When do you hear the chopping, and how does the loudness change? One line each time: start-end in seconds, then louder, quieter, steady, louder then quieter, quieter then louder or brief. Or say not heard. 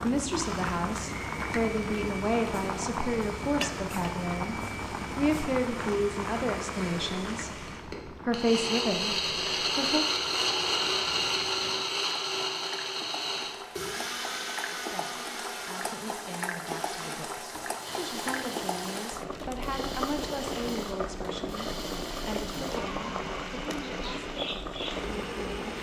not heard.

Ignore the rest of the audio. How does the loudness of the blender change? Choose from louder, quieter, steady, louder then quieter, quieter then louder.
louder then quieter.